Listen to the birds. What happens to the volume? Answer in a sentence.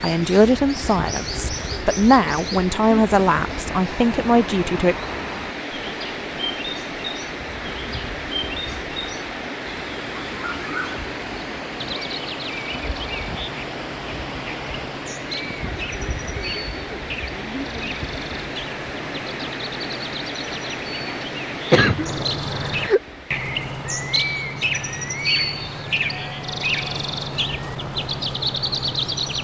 The volume of the birds goes up.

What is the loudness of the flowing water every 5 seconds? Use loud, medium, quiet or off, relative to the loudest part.
loud, loud, loud, loud, loud, medium.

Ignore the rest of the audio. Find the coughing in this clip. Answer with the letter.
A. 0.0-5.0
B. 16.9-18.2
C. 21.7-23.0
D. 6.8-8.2
C.